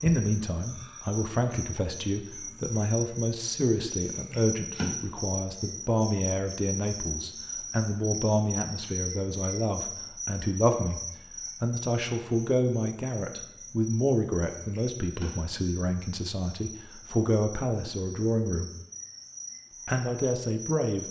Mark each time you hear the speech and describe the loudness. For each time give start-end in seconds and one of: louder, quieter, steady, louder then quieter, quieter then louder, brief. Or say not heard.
0.0-18.7 steady
19.9-21.0 brief.